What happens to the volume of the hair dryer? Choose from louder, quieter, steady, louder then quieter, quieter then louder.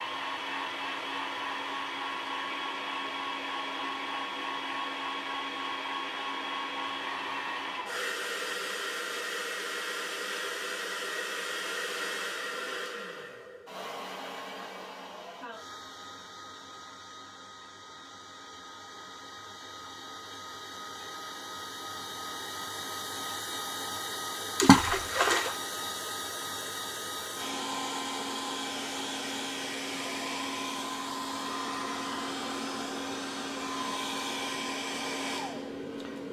quieter then louder.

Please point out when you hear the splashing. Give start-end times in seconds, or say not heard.
24.6-25.6.